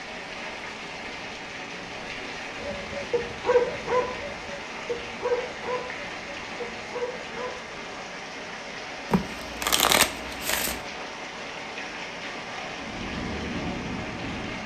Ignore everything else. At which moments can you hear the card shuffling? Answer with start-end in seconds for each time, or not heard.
9.1-10.8.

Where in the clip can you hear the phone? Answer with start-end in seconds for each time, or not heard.
not heard.